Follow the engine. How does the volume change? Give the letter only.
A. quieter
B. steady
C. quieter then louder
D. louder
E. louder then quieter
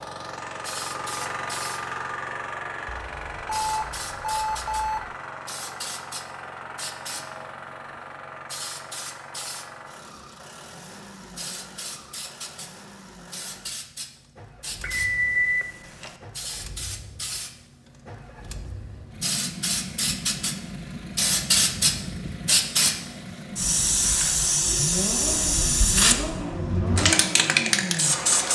C.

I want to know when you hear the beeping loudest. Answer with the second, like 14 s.
15 s.